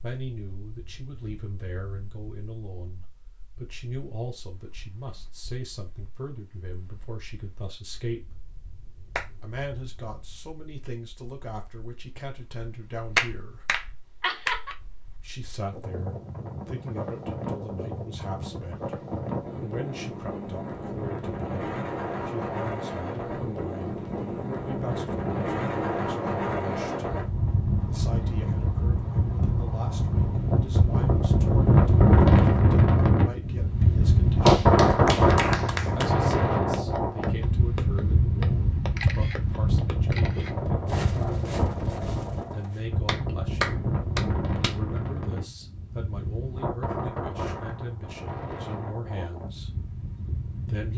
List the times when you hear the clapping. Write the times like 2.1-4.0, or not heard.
13.2-14.8, 34.5-36.1, 43.0-45.0.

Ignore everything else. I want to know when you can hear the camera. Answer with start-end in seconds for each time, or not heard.
39.0-40.5.